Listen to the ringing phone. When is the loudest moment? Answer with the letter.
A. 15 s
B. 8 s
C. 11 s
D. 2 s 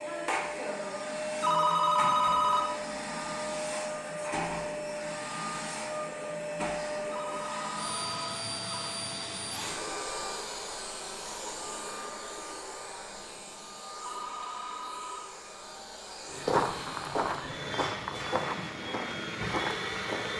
D.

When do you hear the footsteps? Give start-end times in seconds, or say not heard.
16.3-20.3.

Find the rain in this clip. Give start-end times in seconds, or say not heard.
not heard.